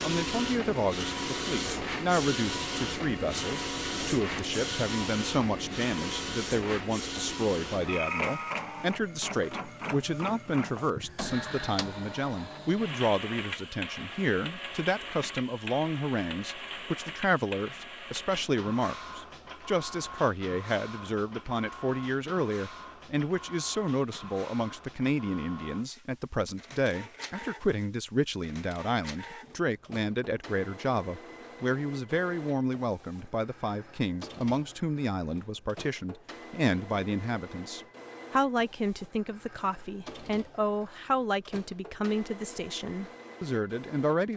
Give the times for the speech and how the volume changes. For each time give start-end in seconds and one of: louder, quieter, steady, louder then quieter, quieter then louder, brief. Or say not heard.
0.0-44.3 steady.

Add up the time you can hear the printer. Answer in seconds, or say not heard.
44 s.